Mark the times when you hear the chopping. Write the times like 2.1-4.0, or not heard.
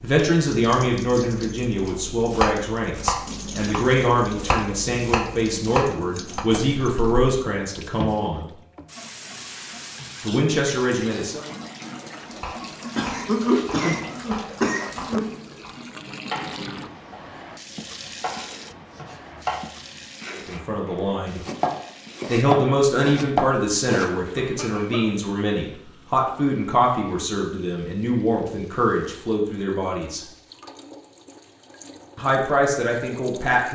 2.3-6.5, 12.3-24.1.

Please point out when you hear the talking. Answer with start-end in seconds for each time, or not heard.
0.0-8.5, 10.2-11.4, 20.4-21.4, 22.2-30.2, 32.1-33.6.